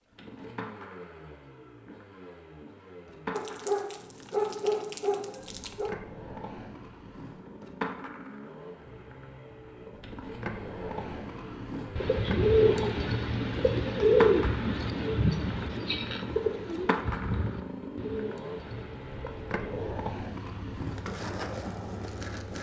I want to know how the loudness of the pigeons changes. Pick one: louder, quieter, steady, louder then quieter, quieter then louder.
quieter.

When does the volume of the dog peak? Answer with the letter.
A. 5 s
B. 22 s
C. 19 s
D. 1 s
A.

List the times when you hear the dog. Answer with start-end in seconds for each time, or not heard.
3.3-6.0.